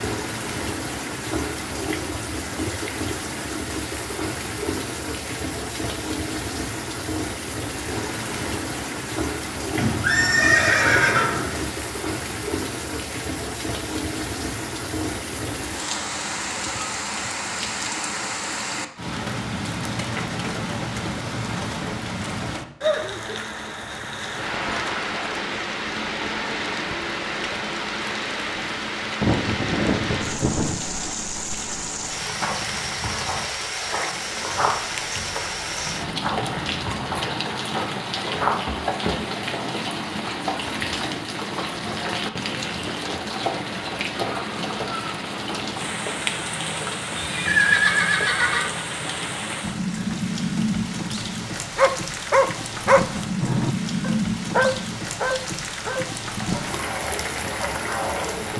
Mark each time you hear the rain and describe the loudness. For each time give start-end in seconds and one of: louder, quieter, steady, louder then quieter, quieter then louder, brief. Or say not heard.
0.0-58.5 steady.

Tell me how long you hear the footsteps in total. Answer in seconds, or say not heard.
7 s.